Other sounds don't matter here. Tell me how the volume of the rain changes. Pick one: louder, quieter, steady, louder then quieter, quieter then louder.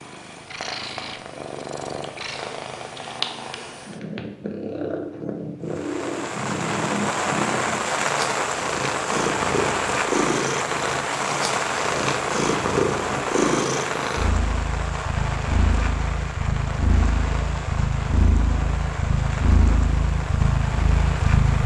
quieter.